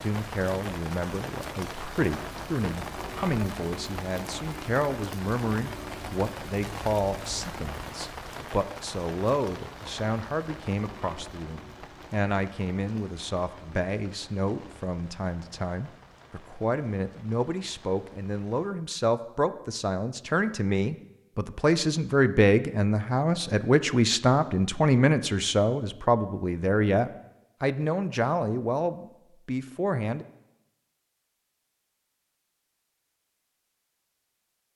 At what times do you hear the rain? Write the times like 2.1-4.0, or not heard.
0.0-18.8.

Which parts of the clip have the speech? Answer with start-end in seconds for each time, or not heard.
0.0-30.2.